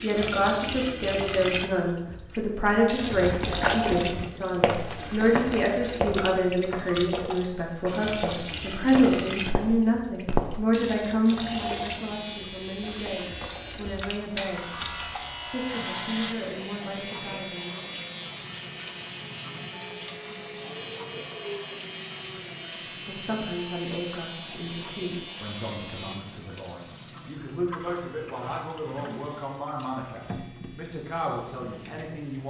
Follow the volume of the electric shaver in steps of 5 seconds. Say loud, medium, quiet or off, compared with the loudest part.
off, off, loud, loud, loud, medium, quiet.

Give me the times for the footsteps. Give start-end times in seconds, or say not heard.
3.1-10.7.